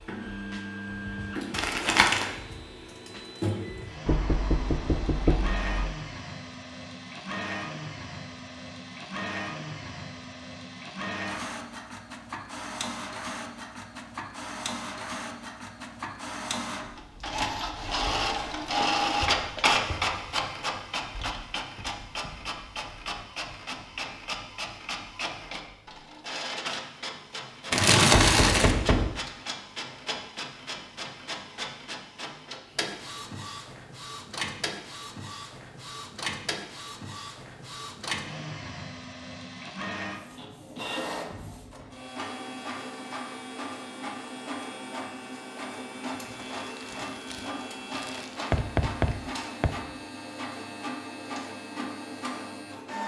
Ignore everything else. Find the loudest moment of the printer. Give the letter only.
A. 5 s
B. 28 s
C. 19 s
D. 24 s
C.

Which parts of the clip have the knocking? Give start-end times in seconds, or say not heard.
4.0-5.9, 28.1-29.2, 48.5-49.7.